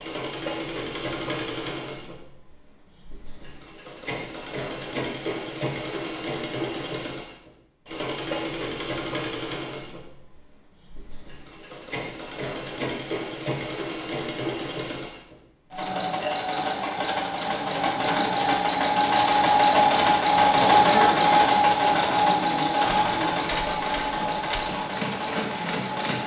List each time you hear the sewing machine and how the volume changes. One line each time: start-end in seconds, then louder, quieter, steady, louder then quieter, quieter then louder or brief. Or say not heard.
0.0-26.2 louder.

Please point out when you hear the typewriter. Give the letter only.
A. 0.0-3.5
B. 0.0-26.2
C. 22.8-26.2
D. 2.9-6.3
C.